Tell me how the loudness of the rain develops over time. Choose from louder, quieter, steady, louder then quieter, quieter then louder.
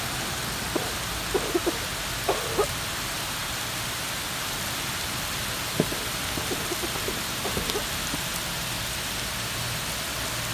steady.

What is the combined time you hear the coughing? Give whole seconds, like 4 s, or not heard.
4 s.